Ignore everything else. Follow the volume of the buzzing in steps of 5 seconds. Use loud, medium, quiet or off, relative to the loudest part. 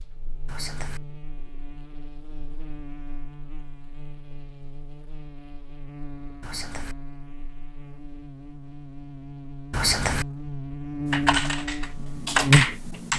quiet, quiet, loud.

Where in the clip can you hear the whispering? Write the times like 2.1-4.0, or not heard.
0.5-1.0, 6.4-7.0, 9.7-10.2.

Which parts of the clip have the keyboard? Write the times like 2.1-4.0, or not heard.
11.1-13.1.